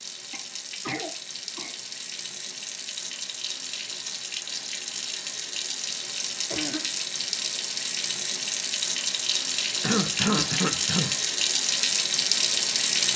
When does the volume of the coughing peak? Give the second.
10 s.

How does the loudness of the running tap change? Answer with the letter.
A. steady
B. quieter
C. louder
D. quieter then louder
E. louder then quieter
C.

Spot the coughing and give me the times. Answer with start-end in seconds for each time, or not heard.
0.3-1.8, 6.5-6.9, 9.8-11.2.